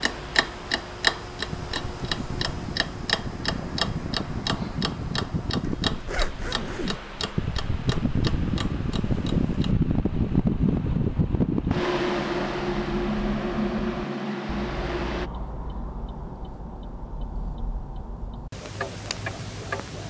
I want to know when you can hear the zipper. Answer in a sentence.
You can hear the zipper from 5.6 to 7.0 s.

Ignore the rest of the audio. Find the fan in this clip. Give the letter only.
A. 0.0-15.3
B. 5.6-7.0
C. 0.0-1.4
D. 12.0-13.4
A.